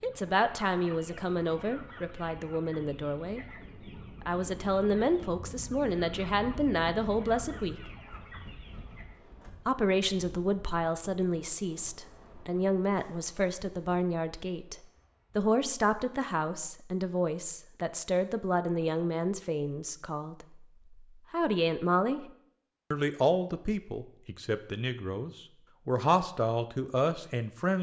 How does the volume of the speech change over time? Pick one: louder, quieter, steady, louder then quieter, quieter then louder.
steady.